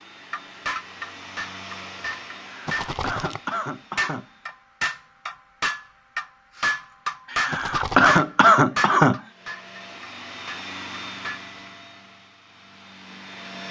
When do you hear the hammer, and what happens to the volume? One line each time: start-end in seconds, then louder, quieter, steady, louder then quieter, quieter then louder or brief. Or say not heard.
0.3-11.4 louder then quieter.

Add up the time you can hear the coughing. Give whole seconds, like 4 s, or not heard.
4 s.